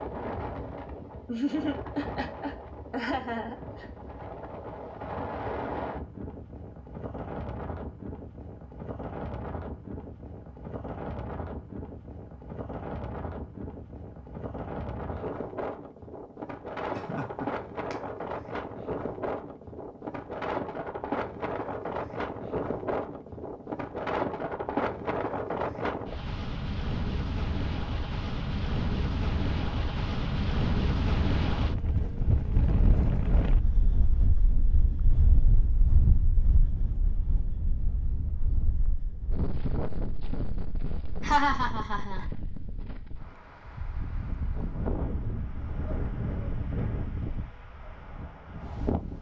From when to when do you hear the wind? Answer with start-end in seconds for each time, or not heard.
0.0-49.1.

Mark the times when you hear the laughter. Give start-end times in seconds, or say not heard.
1.2-3.9, 16.9-17.9, 41.2-42.2.